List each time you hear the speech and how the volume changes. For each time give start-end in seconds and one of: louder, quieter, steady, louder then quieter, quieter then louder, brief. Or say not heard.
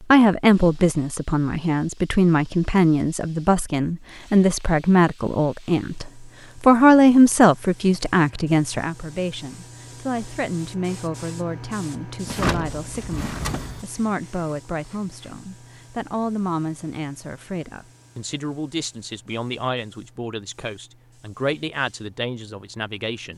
0.0-23.3 quieter.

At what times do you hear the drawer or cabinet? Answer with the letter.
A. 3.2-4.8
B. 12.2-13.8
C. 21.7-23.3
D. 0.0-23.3
B.